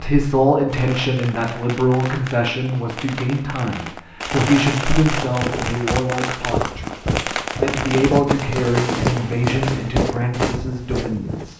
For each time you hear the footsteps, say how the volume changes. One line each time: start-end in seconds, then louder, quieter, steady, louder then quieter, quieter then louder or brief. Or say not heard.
5.2-11.5 steady.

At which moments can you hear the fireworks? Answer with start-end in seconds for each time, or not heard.
0.7-10.6.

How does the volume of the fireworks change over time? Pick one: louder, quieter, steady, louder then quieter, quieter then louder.
louder.